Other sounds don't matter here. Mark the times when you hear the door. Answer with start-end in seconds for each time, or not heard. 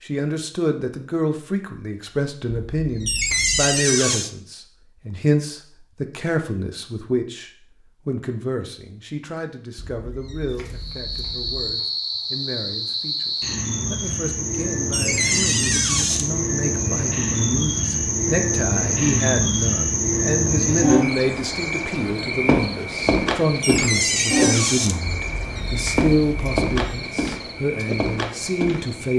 3.0-4.3, 14.9-16.3, 23.6-25.0.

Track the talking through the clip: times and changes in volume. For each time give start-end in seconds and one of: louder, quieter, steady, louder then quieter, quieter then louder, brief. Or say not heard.
0.0-29.1 quieter then louder.